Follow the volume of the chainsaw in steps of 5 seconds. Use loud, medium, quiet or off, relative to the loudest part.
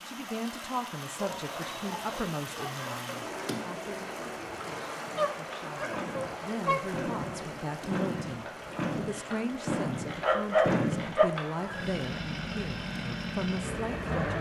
off, loud, loud.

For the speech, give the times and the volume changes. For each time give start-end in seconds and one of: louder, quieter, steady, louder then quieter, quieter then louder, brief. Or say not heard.
0.1-14.3 quieter then louder.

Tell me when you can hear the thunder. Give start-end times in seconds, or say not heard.
not heard.